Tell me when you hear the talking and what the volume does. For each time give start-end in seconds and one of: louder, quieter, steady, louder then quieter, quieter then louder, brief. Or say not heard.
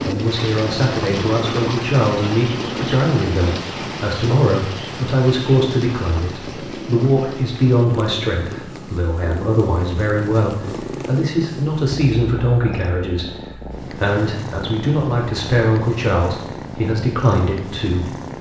0.0-18.1 steady.